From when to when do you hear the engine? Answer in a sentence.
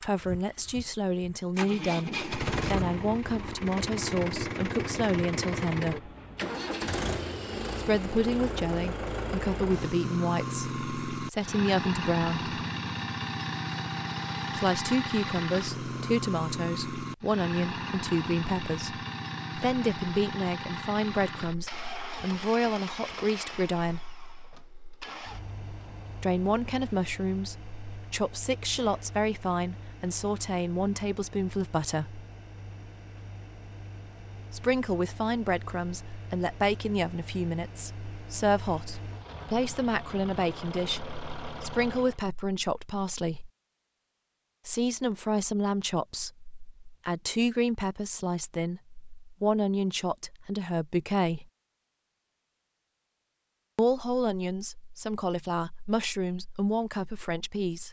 You can hear the engine from 0.0 to 42.2 s.